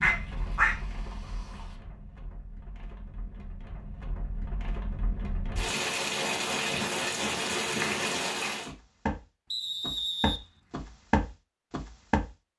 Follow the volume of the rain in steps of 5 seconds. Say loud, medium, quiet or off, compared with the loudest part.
quiet, loud, off.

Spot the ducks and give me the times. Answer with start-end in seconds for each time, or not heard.
0.0-1.8.